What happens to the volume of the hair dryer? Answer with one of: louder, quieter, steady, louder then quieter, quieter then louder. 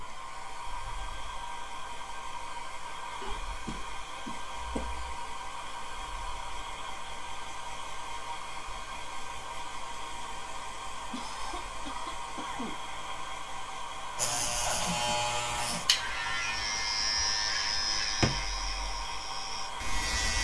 steady.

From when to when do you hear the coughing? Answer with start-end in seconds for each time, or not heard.
3.2-5.0, 11.1-12.8.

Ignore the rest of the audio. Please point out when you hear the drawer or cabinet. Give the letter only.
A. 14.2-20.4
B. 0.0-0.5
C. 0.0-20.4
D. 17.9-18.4
D.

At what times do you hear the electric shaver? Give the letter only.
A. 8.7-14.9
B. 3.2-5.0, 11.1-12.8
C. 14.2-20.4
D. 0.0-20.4
C.